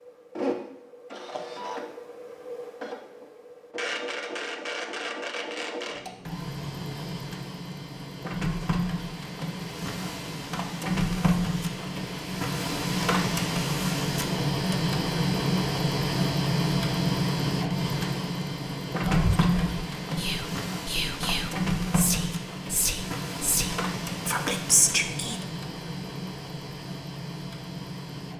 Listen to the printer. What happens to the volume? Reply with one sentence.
The loudness of the printer goes up, then down.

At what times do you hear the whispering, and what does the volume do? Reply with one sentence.
You can hear the whispering from 19.1 to 25.4 s, getting louder.